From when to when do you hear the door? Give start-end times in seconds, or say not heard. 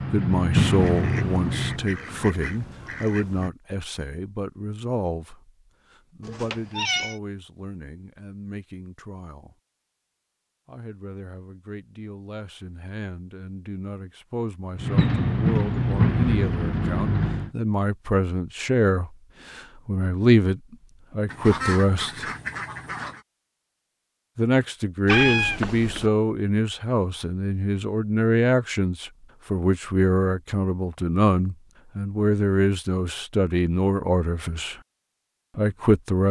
not heard.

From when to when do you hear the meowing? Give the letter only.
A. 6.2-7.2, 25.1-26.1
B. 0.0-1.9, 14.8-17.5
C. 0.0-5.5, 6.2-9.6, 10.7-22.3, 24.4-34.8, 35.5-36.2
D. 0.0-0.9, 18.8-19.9
A.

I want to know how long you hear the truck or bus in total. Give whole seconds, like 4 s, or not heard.
5 s.